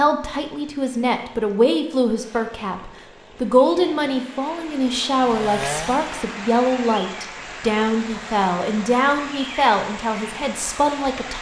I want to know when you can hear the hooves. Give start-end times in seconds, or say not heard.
not heard.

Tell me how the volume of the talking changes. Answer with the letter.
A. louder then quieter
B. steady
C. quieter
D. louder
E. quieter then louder
B.